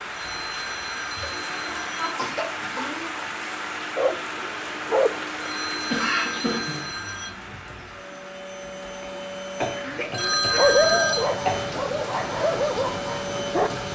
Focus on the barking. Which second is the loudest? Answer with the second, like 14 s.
11 s.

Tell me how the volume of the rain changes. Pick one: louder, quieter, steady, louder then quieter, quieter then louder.
quieter then louder.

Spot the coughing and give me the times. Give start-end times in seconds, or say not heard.
1.2-3.1, 5.9-6.9, 9.6-11.8.